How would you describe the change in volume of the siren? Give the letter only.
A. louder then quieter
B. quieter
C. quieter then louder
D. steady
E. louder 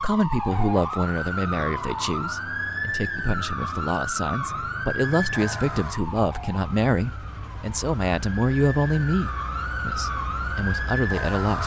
C.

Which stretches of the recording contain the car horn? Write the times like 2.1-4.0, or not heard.
not heard.